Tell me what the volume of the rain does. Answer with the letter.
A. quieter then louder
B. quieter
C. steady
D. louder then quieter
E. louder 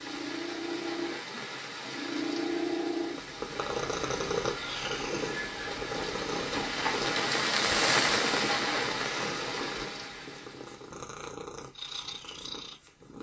D.